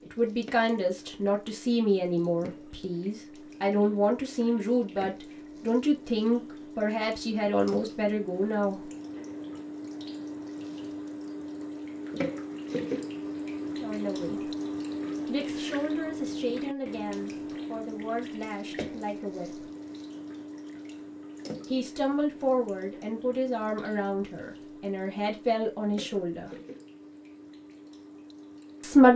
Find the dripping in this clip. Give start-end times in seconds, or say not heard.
0.0-29.1.